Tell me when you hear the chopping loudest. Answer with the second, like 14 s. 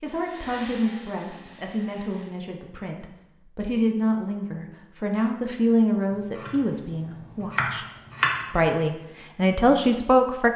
8 s.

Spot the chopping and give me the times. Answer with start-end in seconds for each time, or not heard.
6.1-8.7.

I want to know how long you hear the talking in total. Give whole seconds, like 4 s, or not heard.
10 s.